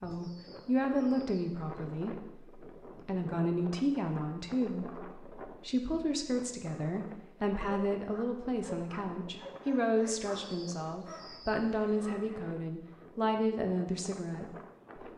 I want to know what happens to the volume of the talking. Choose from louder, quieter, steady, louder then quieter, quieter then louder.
steady.